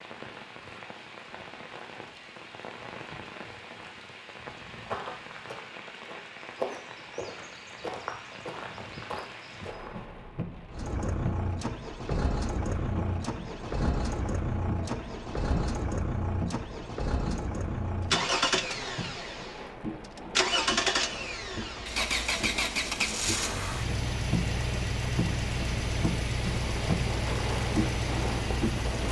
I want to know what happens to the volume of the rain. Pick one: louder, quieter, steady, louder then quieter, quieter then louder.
louder.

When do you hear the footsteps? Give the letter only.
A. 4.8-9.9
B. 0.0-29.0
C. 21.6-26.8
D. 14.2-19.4
A.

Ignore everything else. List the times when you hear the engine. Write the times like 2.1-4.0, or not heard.
10.7-29.0.